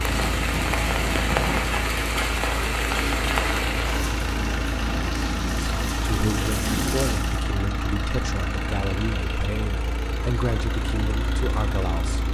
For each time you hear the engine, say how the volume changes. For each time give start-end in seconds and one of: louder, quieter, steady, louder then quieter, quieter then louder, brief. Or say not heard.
0.0-12.2 steady.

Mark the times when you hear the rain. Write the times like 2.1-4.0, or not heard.
0.0-7.5.